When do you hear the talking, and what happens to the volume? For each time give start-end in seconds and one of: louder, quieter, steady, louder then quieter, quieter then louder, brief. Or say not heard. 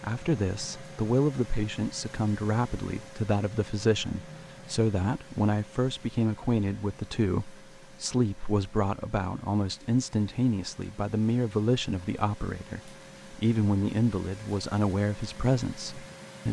0.0-16.4 steady.